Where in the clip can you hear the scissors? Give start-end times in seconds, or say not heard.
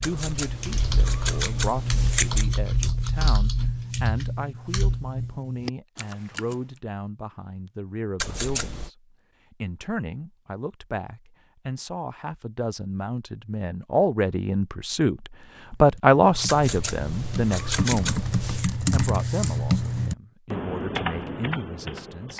0.0-2.6, 8.2-8.9, 16.4-18.7.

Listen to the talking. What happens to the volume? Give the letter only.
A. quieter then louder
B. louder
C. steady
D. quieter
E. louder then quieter
E.